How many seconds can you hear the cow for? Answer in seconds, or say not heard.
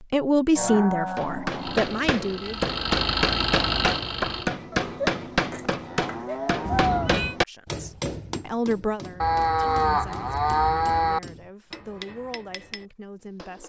6 s.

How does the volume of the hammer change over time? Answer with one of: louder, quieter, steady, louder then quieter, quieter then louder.
quieter.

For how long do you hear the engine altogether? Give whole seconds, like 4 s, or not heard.
3 s.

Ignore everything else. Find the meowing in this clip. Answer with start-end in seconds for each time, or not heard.
6.7-7.3.